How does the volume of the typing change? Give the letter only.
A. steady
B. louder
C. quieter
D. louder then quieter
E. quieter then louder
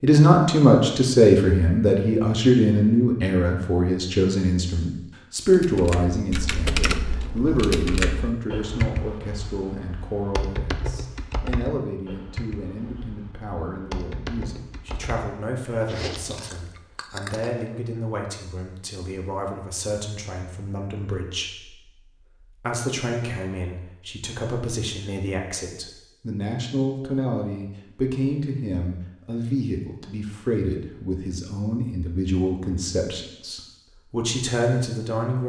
C.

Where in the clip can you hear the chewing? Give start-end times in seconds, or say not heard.
15.8-17.5.